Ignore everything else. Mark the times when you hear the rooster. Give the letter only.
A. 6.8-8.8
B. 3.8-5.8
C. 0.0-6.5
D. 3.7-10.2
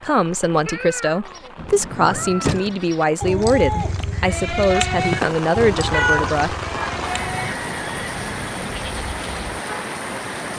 A.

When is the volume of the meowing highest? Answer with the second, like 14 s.
6 s.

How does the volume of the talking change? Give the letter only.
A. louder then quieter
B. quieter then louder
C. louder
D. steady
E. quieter
D.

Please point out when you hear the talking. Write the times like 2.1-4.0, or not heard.
0.0-6.5.